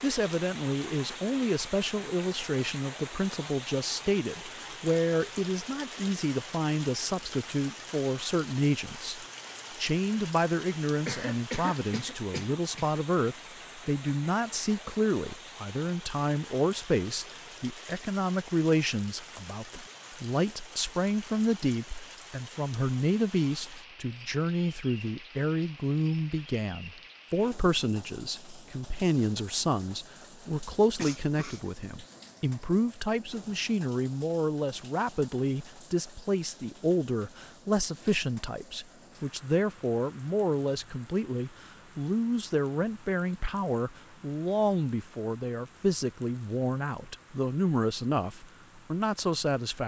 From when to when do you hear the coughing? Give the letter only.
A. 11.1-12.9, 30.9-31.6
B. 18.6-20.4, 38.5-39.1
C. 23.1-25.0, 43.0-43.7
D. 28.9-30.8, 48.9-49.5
A.